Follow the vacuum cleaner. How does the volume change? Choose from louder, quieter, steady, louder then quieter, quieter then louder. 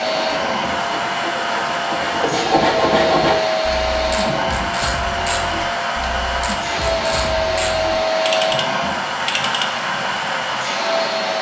steady.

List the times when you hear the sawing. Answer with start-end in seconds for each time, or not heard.
0.0-3.4.